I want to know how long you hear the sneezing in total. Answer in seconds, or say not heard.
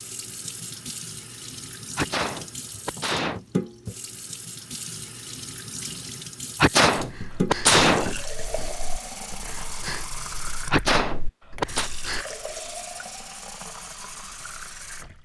4 s.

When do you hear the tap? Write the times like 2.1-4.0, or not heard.
0.0-15.2.